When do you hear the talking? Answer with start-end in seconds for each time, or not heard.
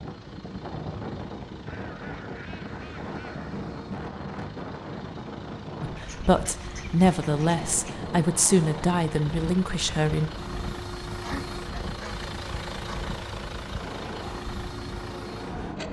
5.8-10.3.